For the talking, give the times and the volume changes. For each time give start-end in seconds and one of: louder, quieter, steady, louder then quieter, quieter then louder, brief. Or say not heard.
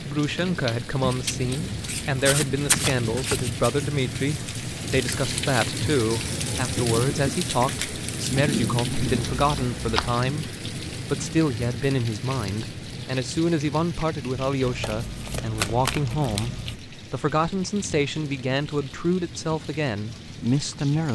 0.0-21.1 steady.